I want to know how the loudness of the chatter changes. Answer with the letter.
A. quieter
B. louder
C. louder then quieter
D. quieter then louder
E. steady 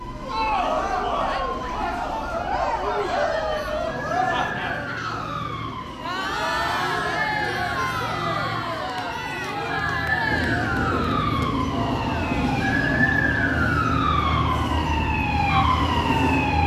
A.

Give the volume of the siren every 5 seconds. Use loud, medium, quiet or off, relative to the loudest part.
medium, medium, loud, loud.